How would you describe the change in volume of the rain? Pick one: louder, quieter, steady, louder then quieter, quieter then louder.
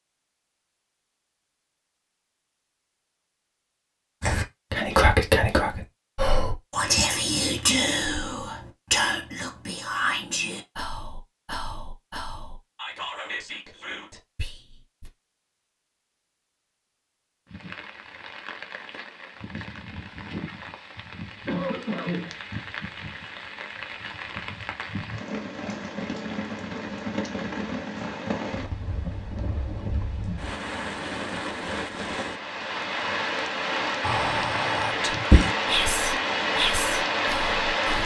louder.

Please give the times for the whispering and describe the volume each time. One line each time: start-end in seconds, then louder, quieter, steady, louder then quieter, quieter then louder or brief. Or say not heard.
4.2-15.1 quieter
34.0-38.0 louder then quieter.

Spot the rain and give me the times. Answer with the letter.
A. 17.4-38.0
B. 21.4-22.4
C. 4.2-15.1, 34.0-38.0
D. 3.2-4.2
A.